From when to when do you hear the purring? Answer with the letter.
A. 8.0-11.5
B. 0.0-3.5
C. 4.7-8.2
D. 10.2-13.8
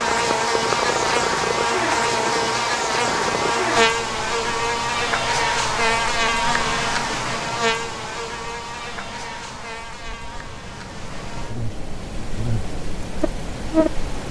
B.